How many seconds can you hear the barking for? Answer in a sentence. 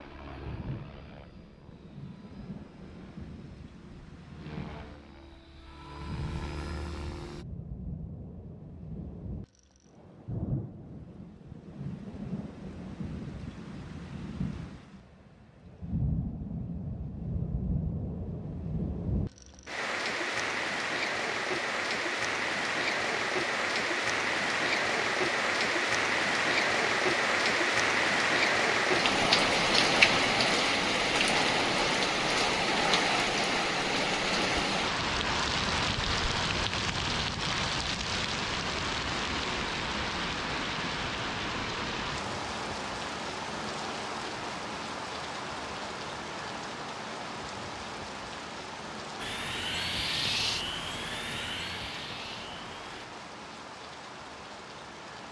You can't hear the barking here.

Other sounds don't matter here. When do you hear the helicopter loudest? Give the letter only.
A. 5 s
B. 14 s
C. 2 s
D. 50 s
D.